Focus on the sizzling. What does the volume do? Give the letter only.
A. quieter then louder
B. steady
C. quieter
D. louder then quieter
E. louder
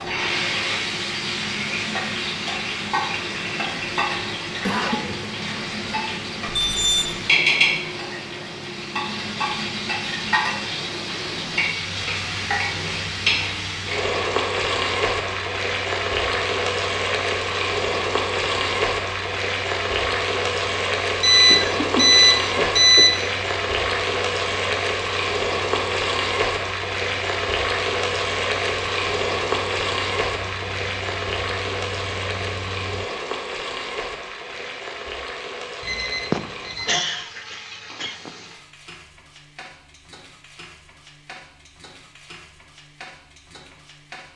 C.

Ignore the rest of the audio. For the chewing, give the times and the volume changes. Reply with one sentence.
The chewing can't be heard in this clip.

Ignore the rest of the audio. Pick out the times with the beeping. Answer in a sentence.
You can hear the beeping from 6.5 to 7.2 s, from 21.2 to 23.1 s and from 35.8 to 37.0 s.